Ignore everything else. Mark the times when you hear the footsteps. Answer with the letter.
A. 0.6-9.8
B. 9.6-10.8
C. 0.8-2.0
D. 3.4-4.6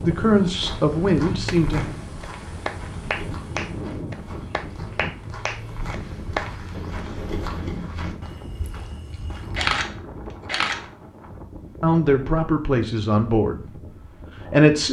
A.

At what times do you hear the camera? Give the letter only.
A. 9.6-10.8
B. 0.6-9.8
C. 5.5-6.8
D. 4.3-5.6
A.